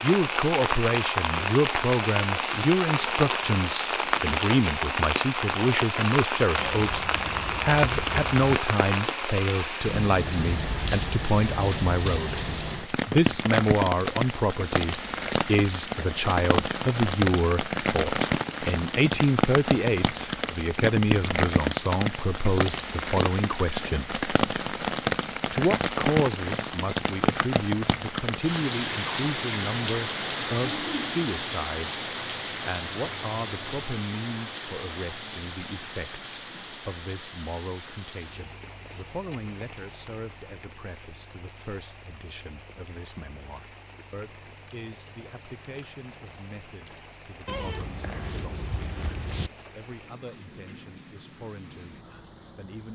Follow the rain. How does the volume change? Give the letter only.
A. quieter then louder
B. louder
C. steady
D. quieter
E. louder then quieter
D.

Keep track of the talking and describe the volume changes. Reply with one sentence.
The loudness of the talking goes down.